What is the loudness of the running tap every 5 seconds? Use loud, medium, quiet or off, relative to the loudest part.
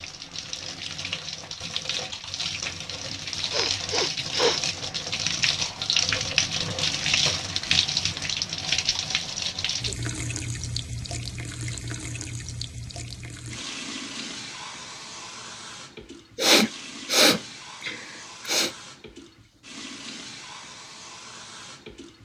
medium, loud, medium, quiet, quiet.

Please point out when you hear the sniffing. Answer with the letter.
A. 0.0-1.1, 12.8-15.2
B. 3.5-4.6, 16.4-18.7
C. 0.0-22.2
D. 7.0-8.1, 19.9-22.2
B.